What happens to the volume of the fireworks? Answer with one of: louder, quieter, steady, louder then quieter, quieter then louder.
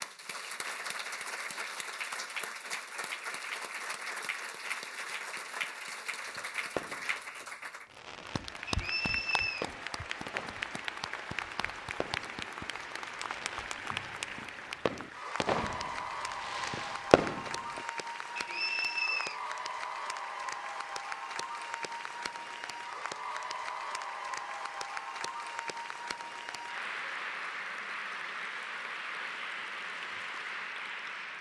quieter then louder.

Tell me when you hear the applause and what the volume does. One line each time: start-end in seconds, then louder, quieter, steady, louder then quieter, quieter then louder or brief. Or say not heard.
0.0-31.3 steady.